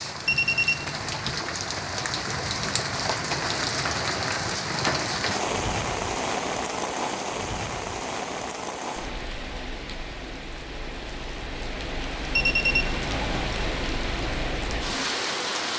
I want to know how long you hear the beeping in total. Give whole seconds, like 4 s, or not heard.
2 s.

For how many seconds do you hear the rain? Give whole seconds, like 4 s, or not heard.
16 s.